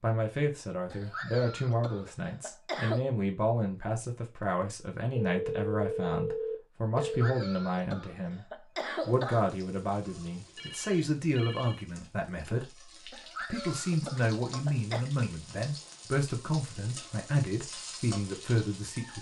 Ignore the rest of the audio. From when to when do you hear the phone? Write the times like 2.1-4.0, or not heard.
5.2-7.3, 10.6-11.8.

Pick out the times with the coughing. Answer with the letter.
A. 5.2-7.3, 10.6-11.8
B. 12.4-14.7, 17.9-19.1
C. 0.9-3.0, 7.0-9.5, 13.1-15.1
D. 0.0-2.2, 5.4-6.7
C.